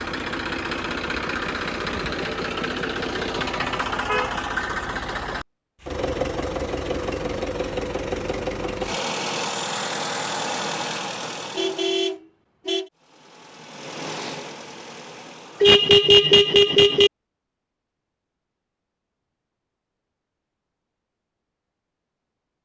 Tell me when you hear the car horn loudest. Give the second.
16 s.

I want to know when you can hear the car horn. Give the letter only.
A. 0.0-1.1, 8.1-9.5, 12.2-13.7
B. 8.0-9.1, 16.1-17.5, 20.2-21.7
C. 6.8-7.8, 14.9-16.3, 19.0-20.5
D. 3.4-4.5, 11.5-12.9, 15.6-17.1
D.